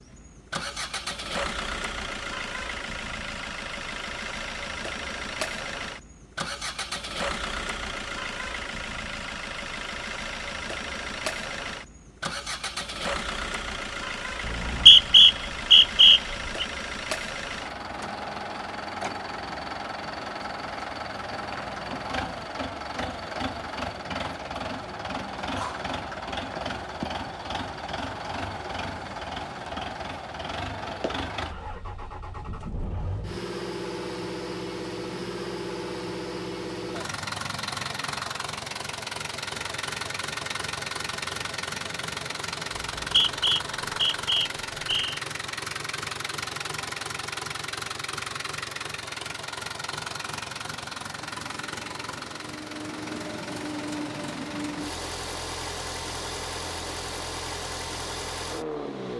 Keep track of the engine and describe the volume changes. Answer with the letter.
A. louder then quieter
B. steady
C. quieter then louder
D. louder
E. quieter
B.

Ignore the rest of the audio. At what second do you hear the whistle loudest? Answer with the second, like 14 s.
15 s.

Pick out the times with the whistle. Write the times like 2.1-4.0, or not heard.
14.4-16.6, 43.0-45.2.